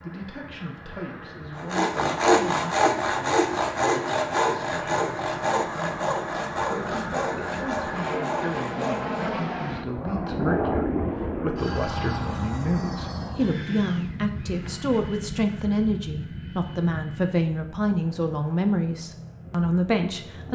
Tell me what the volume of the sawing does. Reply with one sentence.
The volume of the sawing goes down.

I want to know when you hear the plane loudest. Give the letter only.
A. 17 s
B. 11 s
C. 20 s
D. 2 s
B.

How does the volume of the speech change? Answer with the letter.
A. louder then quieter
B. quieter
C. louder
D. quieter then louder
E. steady
C.